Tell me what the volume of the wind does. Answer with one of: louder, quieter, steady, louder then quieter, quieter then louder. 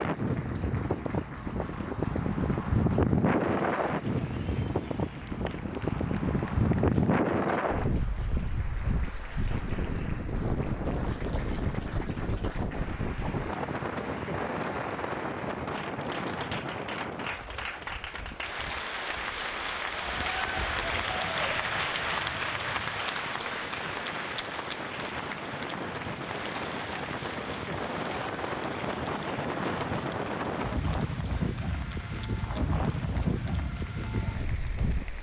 quieter then louder.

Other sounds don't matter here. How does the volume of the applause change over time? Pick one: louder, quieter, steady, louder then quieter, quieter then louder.
louder then quieter.